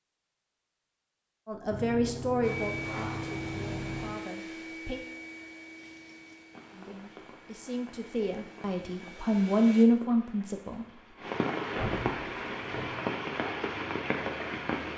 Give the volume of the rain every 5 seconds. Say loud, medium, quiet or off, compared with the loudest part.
off, quiet, loud.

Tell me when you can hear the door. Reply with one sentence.
The door can be heard from 1.7 to 4.2 s and from 11.8 to 12.9 s.